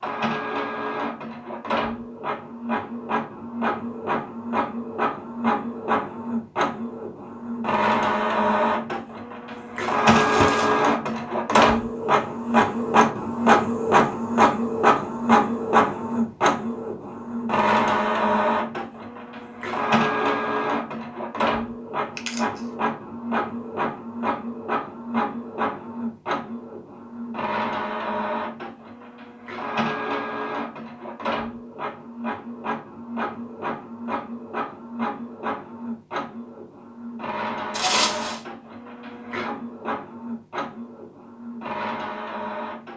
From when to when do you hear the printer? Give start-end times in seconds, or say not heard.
0.0-42.9.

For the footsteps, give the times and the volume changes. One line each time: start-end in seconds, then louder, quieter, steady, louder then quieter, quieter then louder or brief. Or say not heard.
not heard.